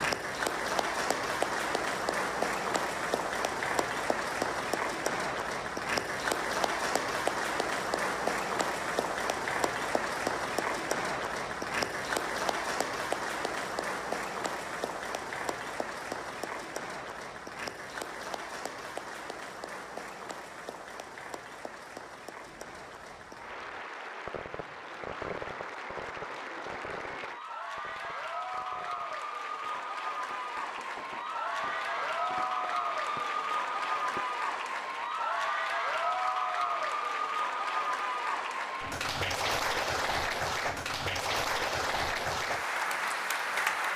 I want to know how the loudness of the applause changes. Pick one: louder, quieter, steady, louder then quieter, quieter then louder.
quieter then louder.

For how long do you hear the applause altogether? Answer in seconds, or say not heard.
44 s.